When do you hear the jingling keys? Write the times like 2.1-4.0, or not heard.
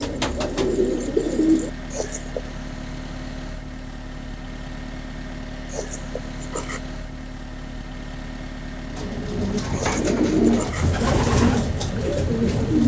1.9-2.5, 5.7-6.8, 9.7-10.9.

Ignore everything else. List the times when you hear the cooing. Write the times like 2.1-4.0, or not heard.
0.0-1.7, 8.9-12.8.